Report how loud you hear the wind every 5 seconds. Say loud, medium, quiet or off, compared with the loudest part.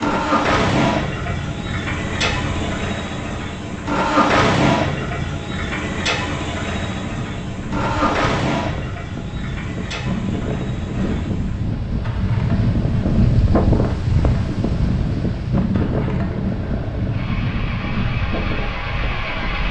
medium, medium, loud, loud.